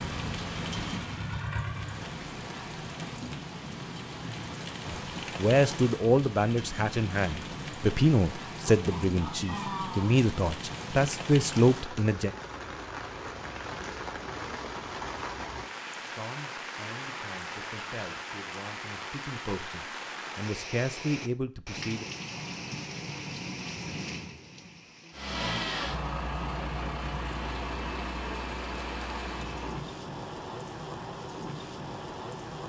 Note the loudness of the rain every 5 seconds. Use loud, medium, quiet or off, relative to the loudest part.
loud, loud, loud, loud, loud, medium, loud.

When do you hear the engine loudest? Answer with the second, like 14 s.
26 s.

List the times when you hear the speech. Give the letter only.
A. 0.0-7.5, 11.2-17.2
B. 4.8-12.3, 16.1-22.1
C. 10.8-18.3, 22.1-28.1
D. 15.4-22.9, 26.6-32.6
B.